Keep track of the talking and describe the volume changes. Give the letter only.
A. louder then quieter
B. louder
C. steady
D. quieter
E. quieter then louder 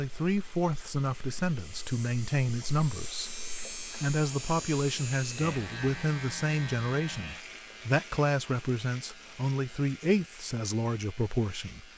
C.